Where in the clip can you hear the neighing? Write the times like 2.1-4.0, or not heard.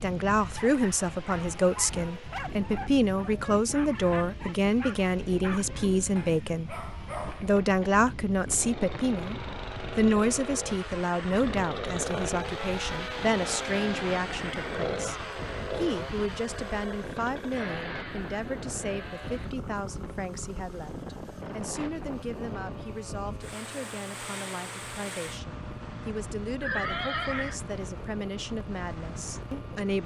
26.6-27.6.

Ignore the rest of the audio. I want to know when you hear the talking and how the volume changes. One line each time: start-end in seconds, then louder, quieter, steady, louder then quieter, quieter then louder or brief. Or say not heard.
0.0-30.0 quieter.